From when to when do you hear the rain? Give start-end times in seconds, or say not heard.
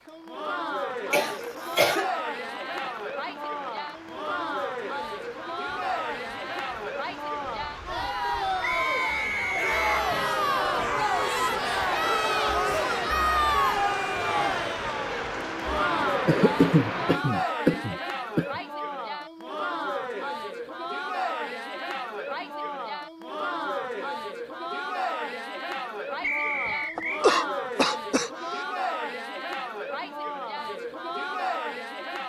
0.0-17.2.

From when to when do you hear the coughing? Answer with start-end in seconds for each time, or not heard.
1.1-2.1, 16.2-18.4, 26.6-28.6.